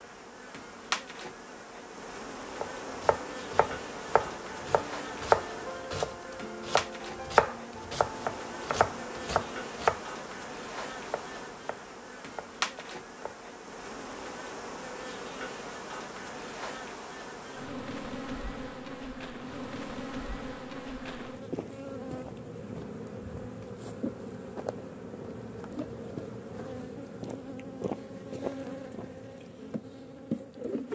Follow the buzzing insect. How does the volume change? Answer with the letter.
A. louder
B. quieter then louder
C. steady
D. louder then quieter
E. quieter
C.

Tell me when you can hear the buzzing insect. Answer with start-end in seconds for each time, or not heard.
0.0-30.9.